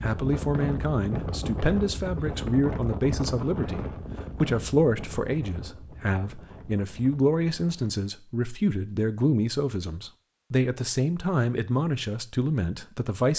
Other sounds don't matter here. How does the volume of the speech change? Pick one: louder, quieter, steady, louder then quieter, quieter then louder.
steady.